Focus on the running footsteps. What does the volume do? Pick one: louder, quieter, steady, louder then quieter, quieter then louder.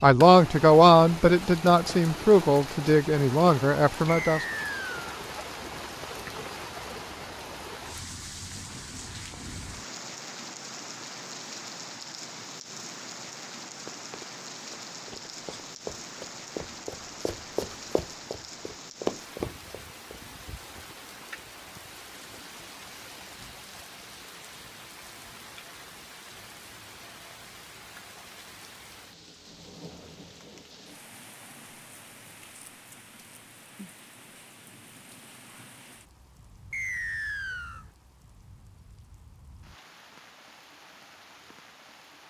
louder.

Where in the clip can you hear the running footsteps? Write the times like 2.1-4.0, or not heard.
13.8-20.2.